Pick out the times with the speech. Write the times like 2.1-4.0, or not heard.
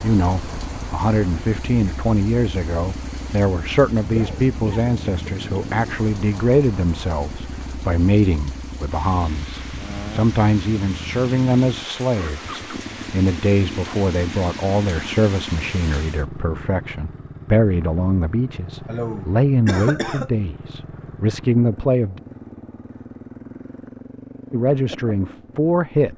0.0-22.2, 24.5-26.1.